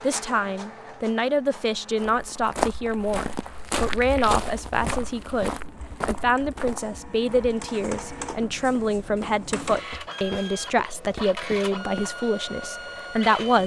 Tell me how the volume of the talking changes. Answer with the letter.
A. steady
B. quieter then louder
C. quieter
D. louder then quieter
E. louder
A.